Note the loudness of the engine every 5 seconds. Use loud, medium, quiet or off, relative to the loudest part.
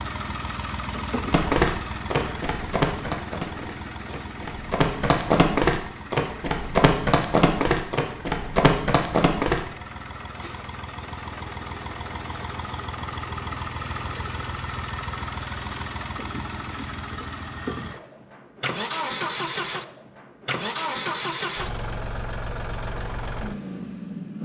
loud, medium, loud, loud, loud.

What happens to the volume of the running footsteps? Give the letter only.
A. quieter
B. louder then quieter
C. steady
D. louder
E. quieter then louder
E.